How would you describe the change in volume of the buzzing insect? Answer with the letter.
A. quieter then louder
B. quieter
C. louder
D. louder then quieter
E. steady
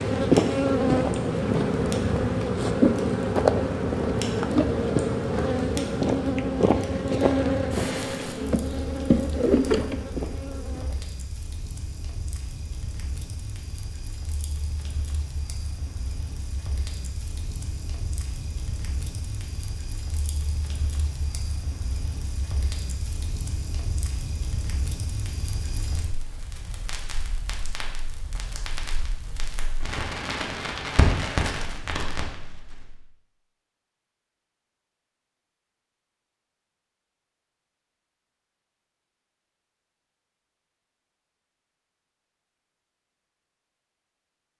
E.